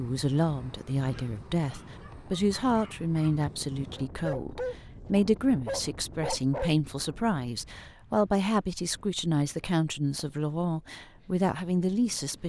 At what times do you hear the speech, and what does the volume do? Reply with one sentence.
The speech can be heard from 0.0 to 12.4 s, at a steady volume.